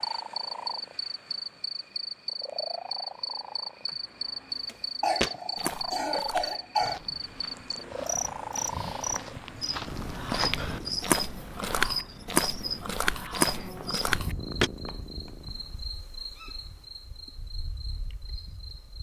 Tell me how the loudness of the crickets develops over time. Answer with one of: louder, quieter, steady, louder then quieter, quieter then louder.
quieter.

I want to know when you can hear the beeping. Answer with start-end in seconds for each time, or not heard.
not heard.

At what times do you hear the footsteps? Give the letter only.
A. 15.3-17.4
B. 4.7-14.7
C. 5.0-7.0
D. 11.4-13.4
B.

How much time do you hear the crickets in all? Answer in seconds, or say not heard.
19 s.